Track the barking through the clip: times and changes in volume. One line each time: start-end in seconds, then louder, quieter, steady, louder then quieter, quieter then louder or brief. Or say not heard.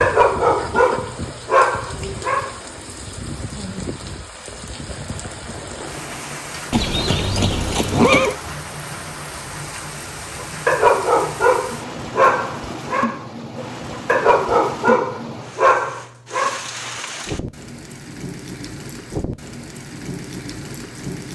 0.0-2.6 brief
10.4-16.7 quieter then louder.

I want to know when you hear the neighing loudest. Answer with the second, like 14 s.
8 s.